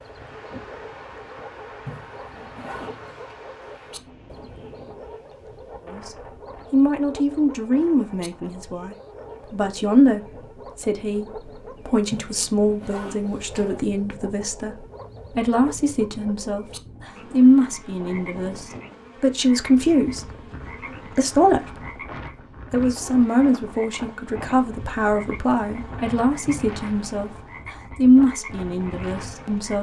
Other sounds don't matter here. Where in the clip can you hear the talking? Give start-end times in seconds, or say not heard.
5.8-21.9, 22.7-29.7.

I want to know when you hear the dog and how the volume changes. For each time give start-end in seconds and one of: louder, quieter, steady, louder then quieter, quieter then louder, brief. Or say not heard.
not heard.